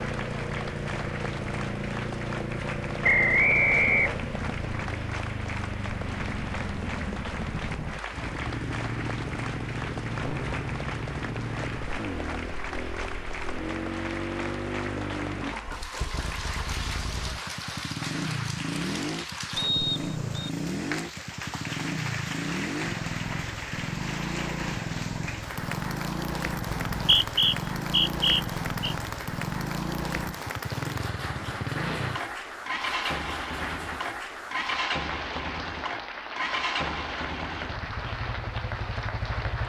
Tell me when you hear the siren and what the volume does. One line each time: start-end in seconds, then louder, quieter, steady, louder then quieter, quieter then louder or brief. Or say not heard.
not heard.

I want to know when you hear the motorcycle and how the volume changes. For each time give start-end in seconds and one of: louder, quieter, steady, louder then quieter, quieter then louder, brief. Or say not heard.
0.0-39.6 steady.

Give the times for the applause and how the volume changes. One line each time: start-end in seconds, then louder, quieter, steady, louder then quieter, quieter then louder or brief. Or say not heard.
0.0-39.6 steady.